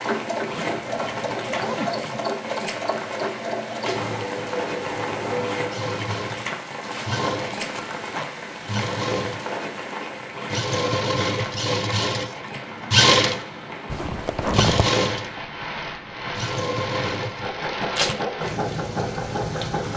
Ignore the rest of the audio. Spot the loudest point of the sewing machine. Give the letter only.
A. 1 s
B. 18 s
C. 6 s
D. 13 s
D.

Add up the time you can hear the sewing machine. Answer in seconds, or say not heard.
20 s.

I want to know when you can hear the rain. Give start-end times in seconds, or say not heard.
0.0-19.9.